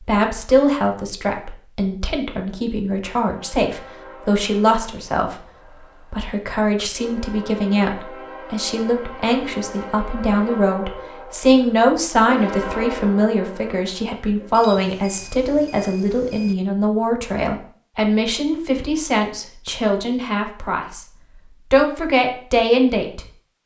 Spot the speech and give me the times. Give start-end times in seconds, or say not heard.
0.0-5.4, 6.1-21.1, 21.7-23.2.